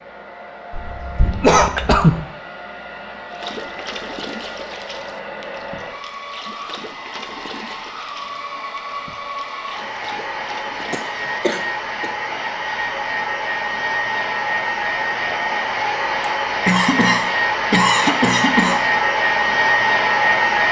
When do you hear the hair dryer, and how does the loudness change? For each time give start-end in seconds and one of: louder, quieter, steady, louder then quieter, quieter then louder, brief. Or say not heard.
0.0-20.6 louder.